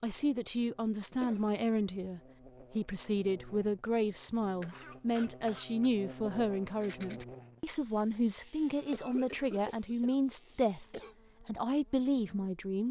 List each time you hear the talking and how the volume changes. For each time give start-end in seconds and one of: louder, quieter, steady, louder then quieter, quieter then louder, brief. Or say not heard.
0.0-12.8 steady.